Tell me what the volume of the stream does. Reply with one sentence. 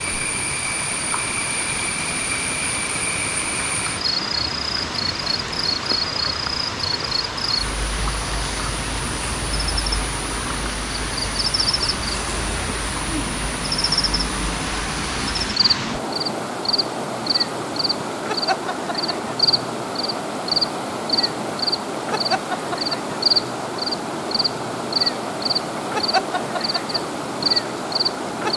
The volume of the stream stays about the same.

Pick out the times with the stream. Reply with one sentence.
You can hear the stream from 0.0 to 28.5 s.